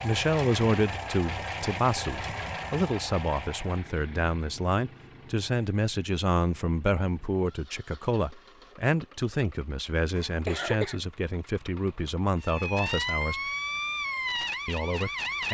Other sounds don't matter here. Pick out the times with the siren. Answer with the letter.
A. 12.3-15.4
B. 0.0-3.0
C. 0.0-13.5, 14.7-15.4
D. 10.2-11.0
A.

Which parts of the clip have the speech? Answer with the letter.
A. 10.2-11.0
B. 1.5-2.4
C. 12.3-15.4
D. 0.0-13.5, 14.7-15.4
D.